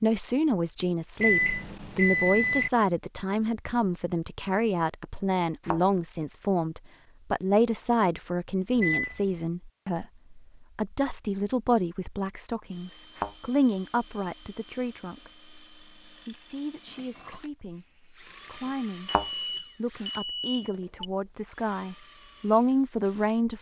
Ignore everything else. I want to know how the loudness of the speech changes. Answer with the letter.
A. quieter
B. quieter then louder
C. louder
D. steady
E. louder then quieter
B.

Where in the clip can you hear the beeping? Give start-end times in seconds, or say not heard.
1.1-2.7, 8.8-9.2, 19.1-21.1.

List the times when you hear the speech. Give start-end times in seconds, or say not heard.
0.0-23.5.